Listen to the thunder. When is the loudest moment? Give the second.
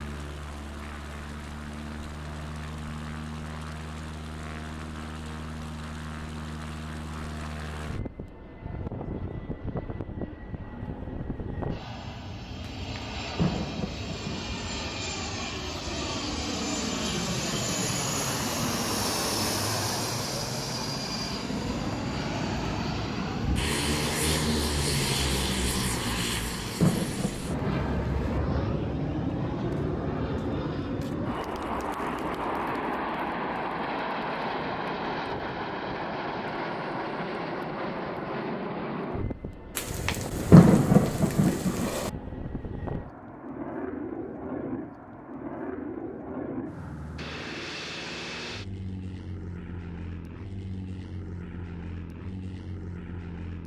41 s.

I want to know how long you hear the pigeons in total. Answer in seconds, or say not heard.
not heard.